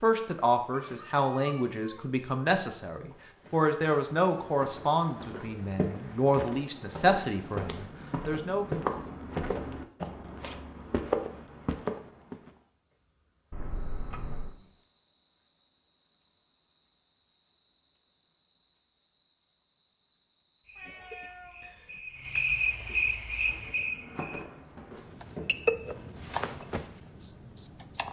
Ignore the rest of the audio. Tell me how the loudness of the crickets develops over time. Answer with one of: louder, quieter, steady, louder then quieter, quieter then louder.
quieter then louder.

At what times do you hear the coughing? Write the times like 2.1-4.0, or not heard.
20.8-21.4.